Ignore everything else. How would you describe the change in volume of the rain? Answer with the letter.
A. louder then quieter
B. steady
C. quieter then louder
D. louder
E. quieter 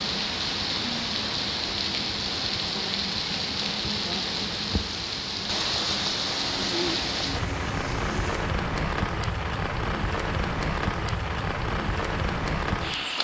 B.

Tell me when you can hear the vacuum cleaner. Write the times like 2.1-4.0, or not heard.
6.3-8.6.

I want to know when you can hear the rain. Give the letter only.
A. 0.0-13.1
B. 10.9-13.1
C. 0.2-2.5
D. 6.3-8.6
A.